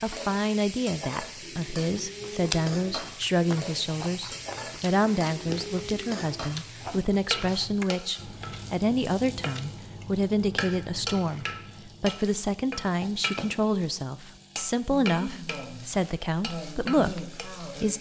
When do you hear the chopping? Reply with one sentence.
You can't hear the chopping here.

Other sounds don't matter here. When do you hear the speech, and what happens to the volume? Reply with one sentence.
You can hear the speech from 0.0 to 17.9 s, at a steady volume.